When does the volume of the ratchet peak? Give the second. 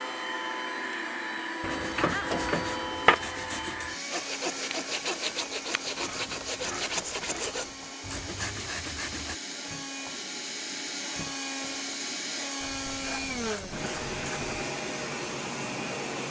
3 s.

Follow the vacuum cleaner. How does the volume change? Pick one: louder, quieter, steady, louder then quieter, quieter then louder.
quieter then louder.